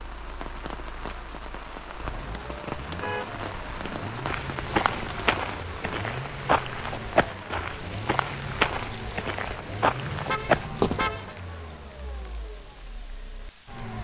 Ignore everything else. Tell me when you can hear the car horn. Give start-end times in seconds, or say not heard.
3.0-4.0, 10.0-11.3.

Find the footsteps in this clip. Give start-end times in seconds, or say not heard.
4.2-11.2.